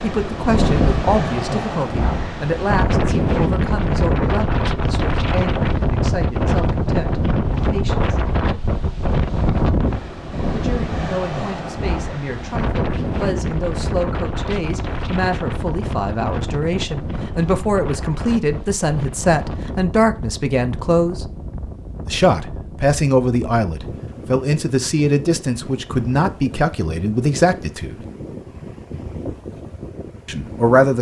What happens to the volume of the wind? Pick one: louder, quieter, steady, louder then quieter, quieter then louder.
quieter.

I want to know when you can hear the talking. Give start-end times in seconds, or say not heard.
0.0-8.2, 10.5-21.3, 22.1-28.0, 30.2-30.9.